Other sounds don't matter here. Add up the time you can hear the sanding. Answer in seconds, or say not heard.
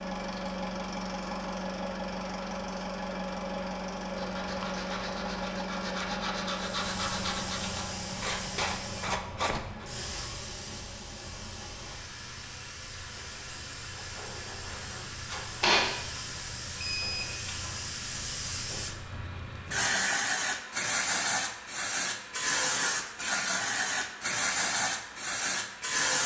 6 s.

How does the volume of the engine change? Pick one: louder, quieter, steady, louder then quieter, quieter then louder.
quieter.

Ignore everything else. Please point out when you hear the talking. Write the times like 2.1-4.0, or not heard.
not heard.